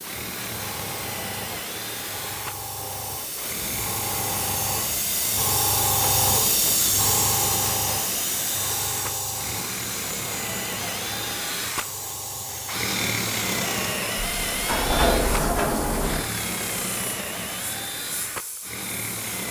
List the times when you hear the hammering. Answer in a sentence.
You can't hear the hammering here.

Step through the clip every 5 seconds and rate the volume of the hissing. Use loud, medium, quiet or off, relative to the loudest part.
medium, loud, medium, quiet.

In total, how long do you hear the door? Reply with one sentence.
You can hear the door for 2 seconds altogether.